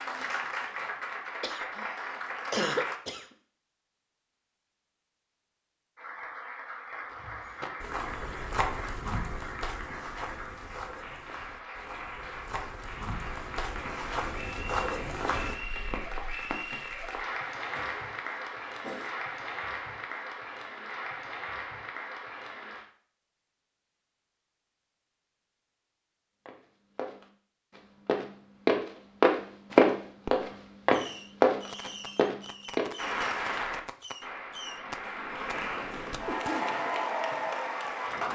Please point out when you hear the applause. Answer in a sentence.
You can hear the applause from 0.0 to 3.0 s, from 6.0 to 22.9 s and from 33.0 to 38.3 s.